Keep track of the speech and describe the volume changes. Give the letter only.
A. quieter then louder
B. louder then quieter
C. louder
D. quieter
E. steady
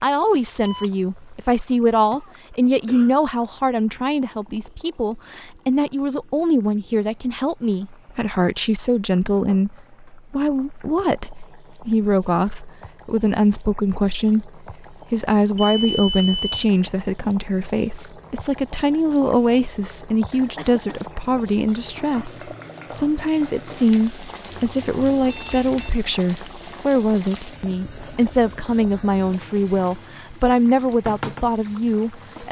E.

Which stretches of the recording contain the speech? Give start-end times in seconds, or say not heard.
0.0-32.4.